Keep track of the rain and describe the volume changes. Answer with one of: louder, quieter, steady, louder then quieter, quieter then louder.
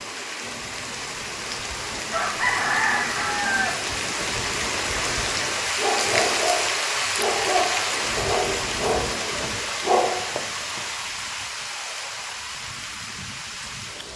louder then quieter.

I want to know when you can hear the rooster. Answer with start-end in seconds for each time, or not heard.
2.1-3.7.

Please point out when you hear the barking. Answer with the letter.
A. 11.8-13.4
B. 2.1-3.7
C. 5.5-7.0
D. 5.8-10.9
D.